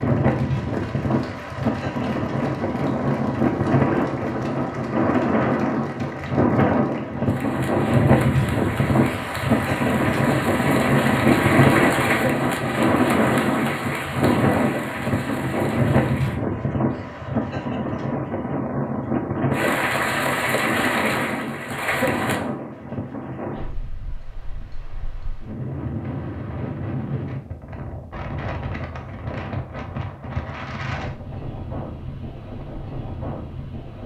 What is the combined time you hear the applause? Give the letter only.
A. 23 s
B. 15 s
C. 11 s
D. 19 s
D.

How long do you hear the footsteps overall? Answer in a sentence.
You can't hear the footsteps here.